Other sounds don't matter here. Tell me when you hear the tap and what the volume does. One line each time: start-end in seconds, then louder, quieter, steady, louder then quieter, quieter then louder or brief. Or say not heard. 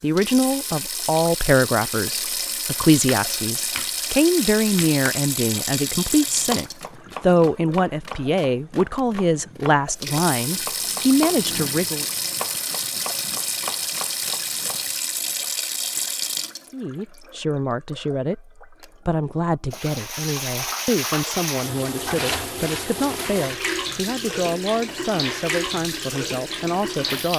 0.0-27.3 steady.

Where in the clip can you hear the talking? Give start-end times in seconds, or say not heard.
0.0-12.1, 16.7-27.3.